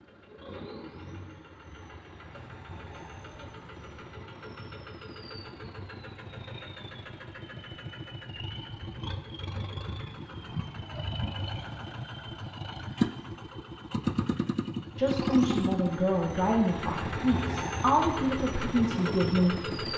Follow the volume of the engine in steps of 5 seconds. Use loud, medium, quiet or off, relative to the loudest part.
quiet, medium, loud, loud.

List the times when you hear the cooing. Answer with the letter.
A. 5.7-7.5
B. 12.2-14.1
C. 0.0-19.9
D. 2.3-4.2
D.